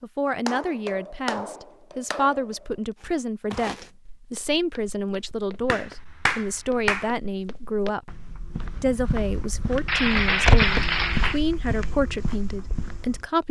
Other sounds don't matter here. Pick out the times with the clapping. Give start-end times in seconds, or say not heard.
0.5-2.5, 5.7-7.2, 9.8-11.4.